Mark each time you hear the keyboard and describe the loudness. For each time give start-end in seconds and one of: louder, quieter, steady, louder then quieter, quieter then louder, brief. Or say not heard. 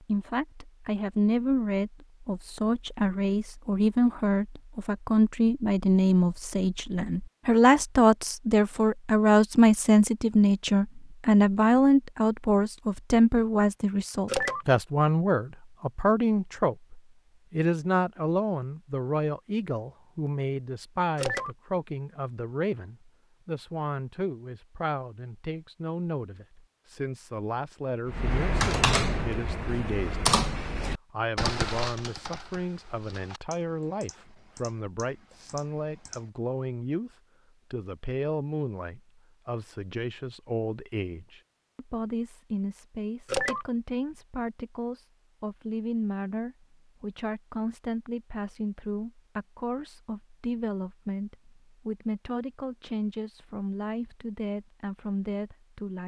28.1-36.3 quieter.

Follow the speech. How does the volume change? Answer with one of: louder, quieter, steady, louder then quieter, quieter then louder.
quieter.